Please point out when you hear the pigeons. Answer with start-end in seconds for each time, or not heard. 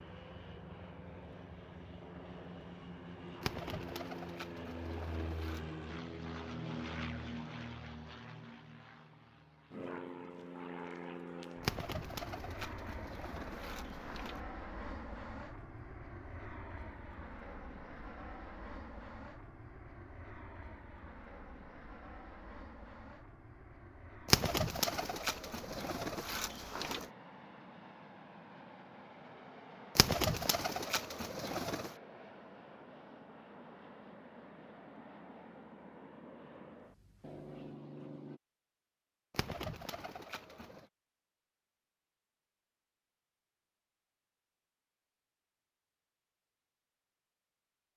3.4-5.6, 11.6-14.4, 24.2-27.1, 29.9-31.9, 39.3-40.9.